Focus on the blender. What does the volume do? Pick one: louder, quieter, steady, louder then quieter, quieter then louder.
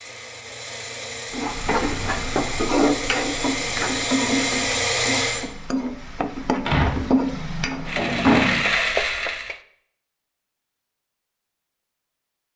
louder.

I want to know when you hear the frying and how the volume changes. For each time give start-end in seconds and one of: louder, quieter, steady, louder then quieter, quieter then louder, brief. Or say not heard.
1.3-9.6 quieter then louder.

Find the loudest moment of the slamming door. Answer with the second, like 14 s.
8 s.